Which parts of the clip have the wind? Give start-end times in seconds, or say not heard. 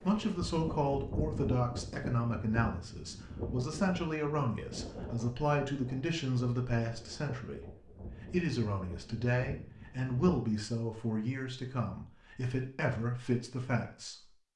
0.0-10.3.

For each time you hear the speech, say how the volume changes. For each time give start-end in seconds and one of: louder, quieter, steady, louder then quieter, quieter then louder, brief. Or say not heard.
0.0-14.3 steady.